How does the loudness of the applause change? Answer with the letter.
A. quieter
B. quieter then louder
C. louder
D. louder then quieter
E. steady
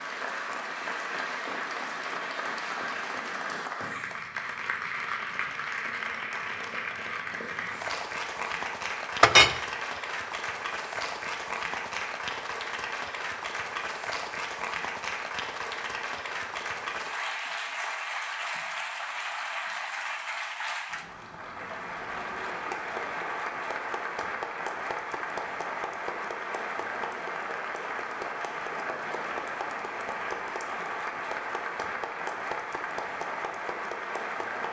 E.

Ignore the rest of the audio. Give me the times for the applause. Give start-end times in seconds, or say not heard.
0.0-34.6.